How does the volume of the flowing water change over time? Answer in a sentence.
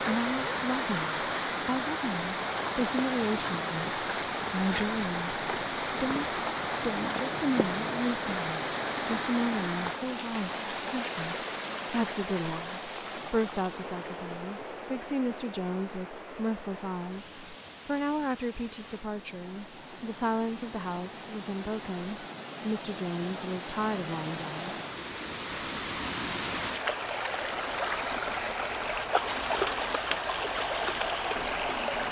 The volume of the flowing water goes down, then up.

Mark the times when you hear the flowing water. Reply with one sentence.
You can hear the flowing water from 0.0 to 32.0 s.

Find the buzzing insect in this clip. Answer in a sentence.
The buzzing insect can't be heard in this clip.